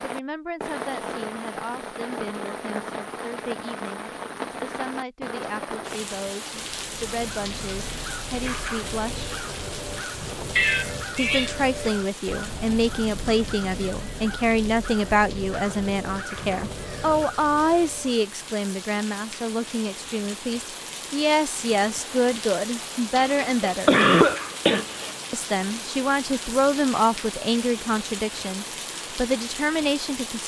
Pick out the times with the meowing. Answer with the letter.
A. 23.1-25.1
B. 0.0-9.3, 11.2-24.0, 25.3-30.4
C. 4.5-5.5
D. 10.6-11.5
D.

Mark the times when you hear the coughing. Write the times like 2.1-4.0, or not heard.
23.1-25.1.